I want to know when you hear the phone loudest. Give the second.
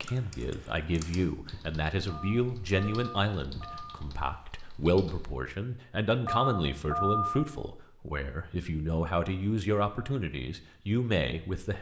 7 s.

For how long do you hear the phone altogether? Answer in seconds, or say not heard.
3 s.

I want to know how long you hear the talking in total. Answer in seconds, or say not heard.
12 s.